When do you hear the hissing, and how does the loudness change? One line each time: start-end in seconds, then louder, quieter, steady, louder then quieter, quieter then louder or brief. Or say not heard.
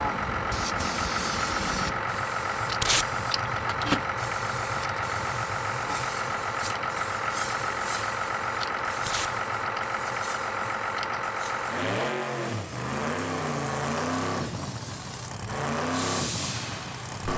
0.0-17.3 quieter then louder.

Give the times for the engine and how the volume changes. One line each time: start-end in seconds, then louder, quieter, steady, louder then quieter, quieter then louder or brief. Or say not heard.
0.0-17.3 steady.